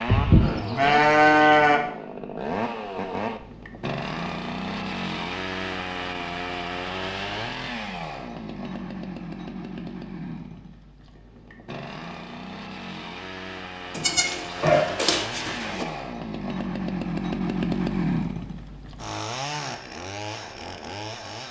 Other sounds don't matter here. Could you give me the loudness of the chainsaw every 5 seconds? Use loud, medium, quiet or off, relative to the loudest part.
loud, loud, medium, loud, medium.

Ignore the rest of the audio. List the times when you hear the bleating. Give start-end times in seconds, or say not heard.
0.1-1.8, 13.9-15.8.